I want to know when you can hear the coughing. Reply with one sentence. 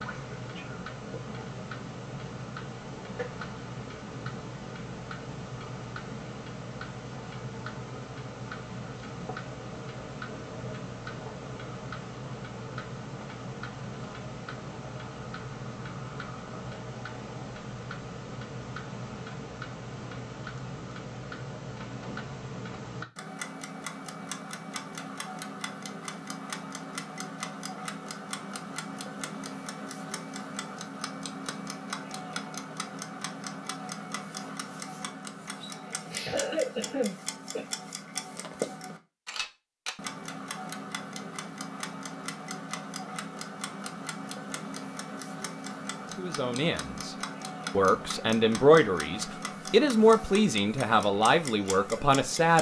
You can hear the coughing from 36.0 to 37.6 s.